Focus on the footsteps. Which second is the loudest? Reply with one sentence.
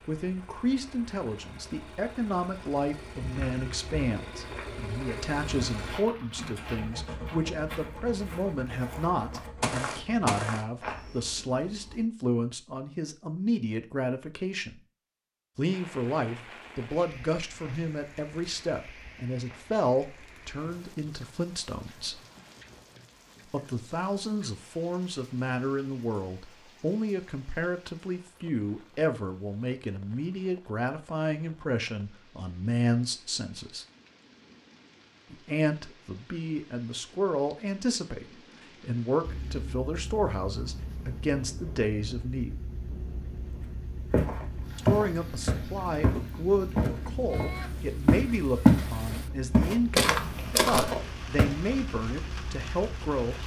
The volume of the footsteps peaks at 49 seconds.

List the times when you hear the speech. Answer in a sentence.
The speech can be heard from 0.1 to 14.8 s, from 15.6 to 22.2 s, from 23.4 to 33.9 s, from 35.3 to 42.5 s and from 44.8 to 53.4 s.